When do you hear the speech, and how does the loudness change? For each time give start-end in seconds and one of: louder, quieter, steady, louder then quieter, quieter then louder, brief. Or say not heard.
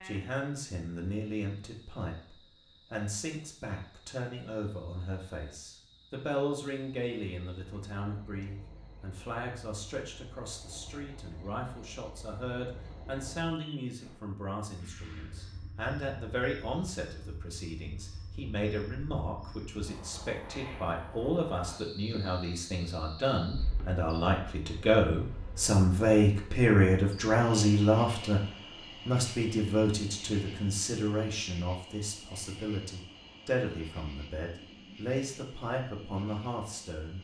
0.0-37.1 louder then quieter.